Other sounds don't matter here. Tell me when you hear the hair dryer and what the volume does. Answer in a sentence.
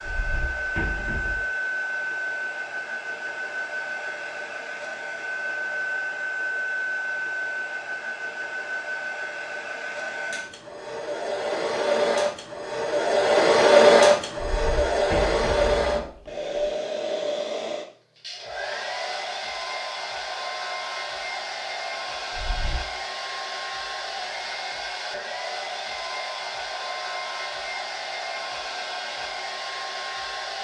You can hear the hair dryer from 0.0 to 30.6 s, getting louder then quieter.